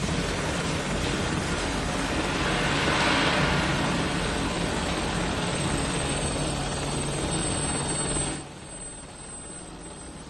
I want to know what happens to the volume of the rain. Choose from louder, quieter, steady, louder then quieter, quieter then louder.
louder then quieter.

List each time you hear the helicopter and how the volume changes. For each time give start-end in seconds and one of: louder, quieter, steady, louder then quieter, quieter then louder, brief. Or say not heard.
0.0-10.2 quieter.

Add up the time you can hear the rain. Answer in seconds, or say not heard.
6 s.